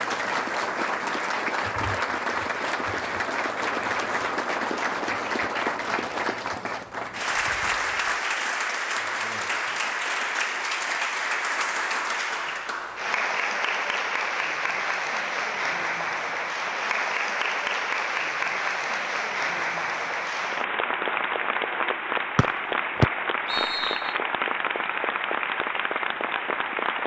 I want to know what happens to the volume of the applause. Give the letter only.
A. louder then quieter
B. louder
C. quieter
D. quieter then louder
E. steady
E.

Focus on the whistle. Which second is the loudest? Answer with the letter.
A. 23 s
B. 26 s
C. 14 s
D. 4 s
A.